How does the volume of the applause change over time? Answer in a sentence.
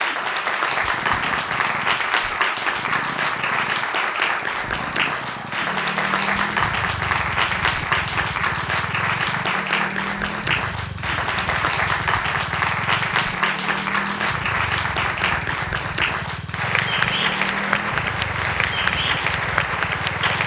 The loudness of the applause stays about the same.